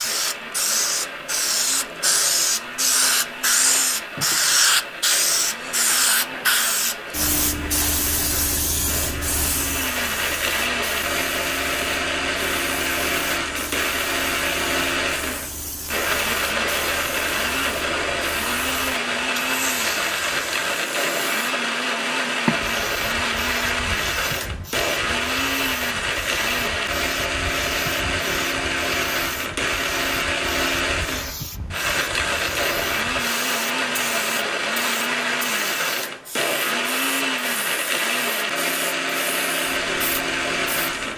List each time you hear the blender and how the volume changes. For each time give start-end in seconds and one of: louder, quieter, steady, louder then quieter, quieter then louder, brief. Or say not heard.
0.0-41.1 louder.